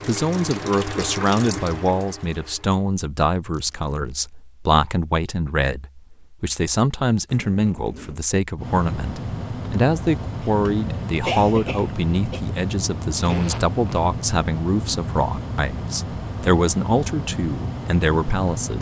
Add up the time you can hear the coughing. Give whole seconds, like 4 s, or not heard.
2 s.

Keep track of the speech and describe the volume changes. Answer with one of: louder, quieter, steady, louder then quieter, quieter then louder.
steady.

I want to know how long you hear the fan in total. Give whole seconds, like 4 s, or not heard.
10 s.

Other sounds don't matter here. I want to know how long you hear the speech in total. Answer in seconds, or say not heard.
19 s.